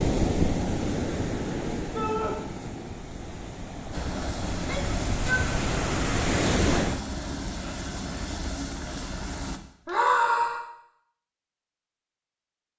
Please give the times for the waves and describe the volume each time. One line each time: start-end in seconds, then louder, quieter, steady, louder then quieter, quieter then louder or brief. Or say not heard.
0.0-7.0 quieter then louder.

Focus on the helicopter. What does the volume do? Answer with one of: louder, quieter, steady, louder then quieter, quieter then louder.
steady.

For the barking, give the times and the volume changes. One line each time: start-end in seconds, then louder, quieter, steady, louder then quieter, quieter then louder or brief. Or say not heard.
not heard.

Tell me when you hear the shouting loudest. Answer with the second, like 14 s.
10 s.